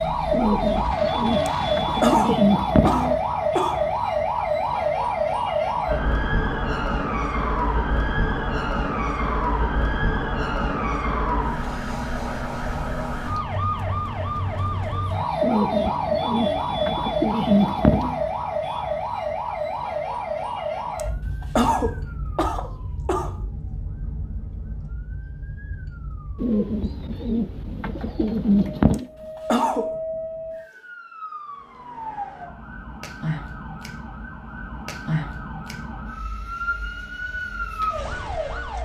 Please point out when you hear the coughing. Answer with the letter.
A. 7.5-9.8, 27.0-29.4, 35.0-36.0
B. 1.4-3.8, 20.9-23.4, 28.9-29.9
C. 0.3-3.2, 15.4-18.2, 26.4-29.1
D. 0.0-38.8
B.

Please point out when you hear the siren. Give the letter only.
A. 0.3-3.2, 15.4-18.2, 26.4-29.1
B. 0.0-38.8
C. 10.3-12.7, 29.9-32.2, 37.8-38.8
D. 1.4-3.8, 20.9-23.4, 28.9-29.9
B.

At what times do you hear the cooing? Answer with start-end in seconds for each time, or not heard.
0.3-3.2, 15.4-18.2, 26.4-29.1.